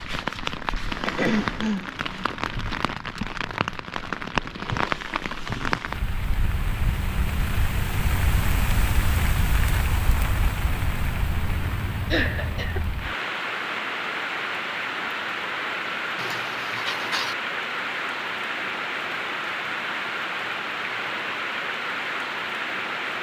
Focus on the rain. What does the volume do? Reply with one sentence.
The volume of the rain stays about the same.